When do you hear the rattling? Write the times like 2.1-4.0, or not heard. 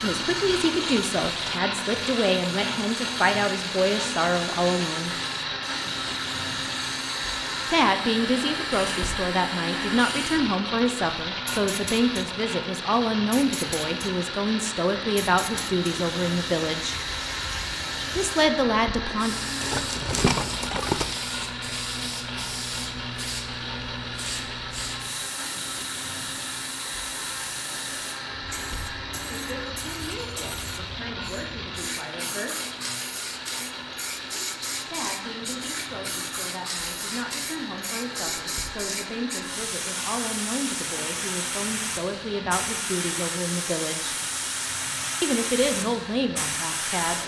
19.6-21.1.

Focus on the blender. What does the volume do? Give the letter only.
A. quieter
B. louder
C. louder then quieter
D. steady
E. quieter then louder
A.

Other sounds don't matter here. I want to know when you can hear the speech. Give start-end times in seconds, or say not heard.
0.0-5.2, 7.7-16.9, 18.1-19.4, 29.2-32.5, 34.9-44.1, 45.2-47.2.